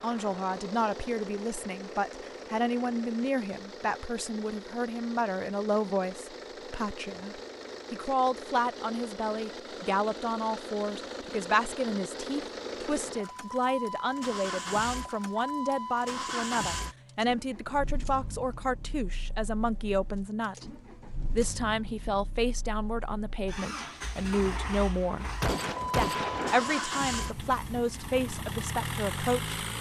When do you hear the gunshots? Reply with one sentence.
The gunshots can be heard from 25.4 to 26.9 s.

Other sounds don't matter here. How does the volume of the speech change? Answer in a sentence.
The loudness of the speech stays about the same.